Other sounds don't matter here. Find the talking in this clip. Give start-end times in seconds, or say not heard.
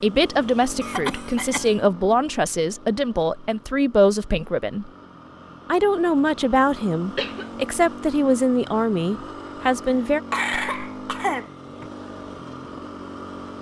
0.0-4.9, 5.7-10.2.